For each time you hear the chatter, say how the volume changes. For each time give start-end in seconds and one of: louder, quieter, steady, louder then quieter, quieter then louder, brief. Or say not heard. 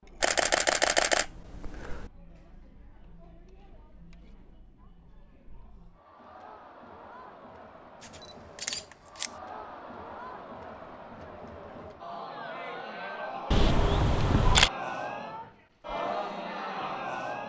0.0-17.4 louder.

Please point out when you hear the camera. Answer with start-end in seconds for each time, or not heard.
0.2-2.1, 8.0-9.3, 13.5-14.7.